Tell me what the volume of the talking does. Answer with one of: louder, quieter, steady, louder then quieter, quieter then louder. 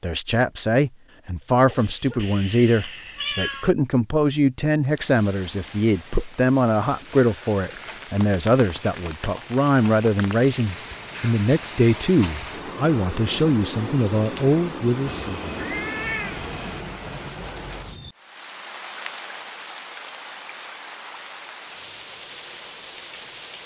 steady.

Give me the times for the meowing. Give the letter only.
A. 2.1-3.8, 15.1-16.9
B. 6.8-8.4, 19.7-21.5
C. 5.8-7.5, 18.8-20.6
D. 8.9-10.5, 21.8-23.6
A.